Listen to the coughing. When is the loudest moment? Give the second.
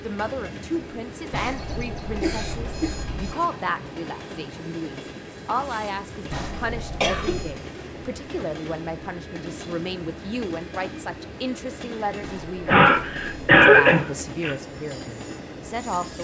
14 s.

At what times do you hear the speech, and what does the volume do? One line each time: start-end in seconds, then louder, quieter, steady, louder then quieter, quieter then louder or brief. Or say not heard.
0.0-12.8 steady
13.6-16.1 brief.